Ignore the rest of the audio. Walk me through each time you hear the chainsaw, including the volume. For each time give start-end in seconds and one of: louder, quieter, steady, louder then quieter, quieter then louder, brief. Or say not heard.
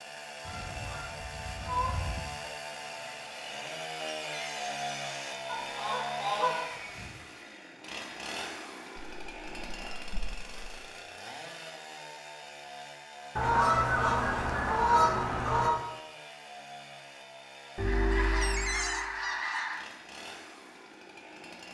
0.0-21.7 quieter.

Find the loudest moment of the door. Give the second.
19 s.